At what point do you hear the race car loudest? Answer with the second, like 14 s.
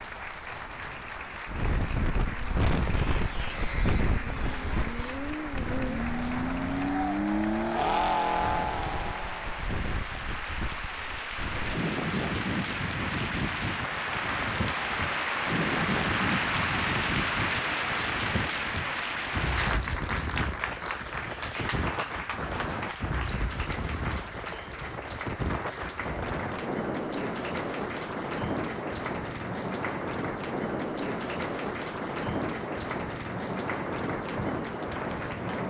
8 s.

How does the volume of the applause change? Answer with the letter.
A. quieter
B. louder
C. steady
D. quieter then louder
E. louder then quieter
E.